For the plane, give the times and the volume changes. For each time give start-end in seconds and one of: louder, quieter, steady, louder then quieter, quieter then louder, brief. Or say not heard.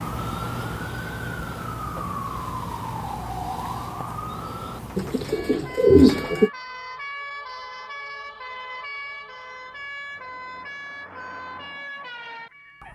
not heard.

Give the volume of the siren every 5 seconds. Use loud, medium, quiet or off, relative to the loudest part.
loud, medium, medium.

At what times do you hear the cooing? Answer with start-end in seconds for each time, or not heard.
5.0-6.5.